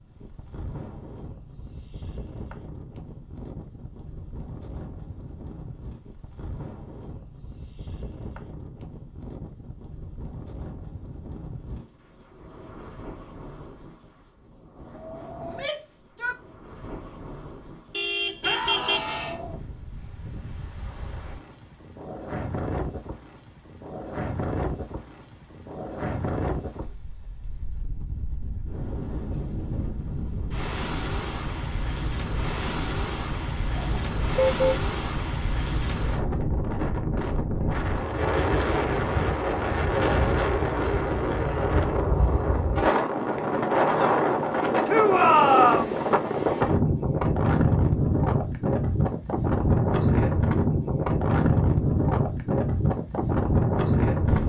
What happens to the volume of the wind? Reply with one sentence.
The volume of the wind goes up.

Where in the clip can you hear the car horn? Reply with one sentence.
You can hear the car horn from 17.9 to 19.0 s and from 33.8 to 34.8 s.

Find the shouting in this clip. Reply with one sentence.
The shouting can be heard from 15.4 to 16.4 s, from 18.4 to 19.4 s and from 44.9 to 46.0 s.